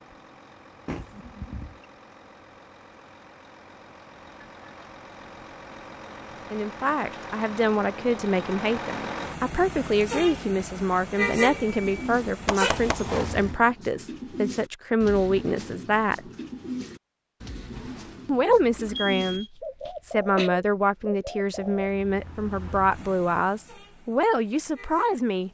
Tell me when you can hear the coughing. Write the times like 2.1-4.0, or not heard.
18.9-20.5.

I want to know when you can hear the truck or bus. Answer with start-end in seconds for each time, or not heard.
0.0-13.6, 21.5-25.4.